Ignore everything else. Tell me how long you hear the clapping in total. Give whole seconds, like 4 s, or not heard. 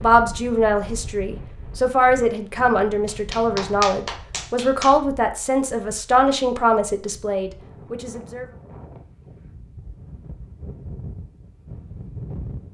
2 s.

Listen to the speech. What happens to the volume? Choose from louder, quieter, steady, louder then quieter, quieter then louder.
steady.